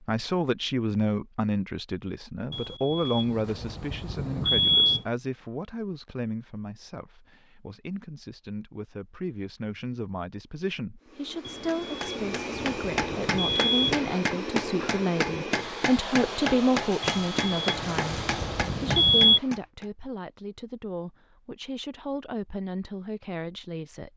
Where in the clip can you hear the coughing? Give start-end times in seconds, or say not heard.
not heard.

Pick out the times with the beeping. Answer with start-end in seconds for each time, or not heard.
2.5-5.0, 11.4-14.1, 17.0-19.4.